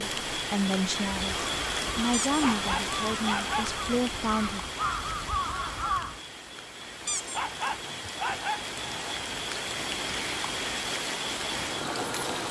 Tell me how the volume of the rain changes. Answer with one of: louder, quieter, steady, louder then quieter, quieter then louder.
quieter then louder.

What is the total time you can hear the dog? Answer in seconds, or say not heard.
4 s.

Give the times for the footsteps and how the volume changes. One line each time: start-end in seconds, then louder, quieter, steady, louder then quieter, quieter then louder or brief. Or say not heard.
not heard.